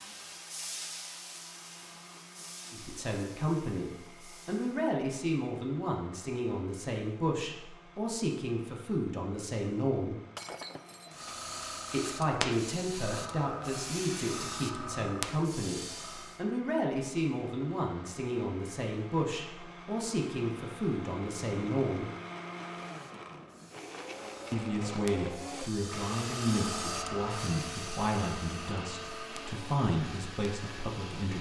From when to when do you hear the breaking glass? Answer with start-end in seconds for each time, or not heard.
10.3-11.2.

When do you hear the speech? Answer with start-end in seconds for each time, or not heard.
2.7-10.2, 11.9-22.1, 24.5-31.3.